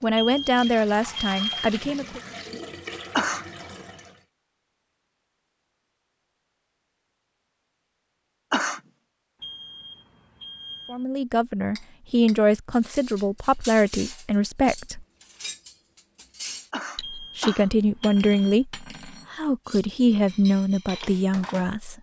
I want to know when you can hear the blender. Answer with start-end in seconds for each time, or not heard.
not heard.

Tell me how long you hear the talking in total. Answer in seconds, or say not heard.
11 s.